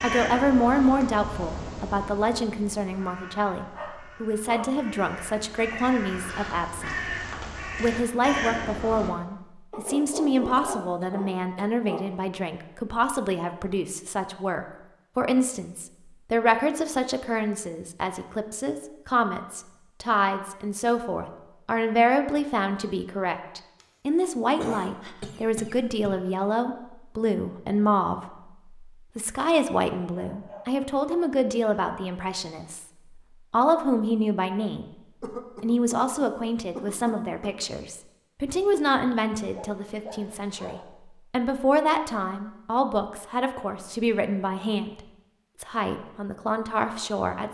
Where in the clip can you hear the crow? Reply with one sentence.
The crow can be heard from 0.0 to 9.1 s.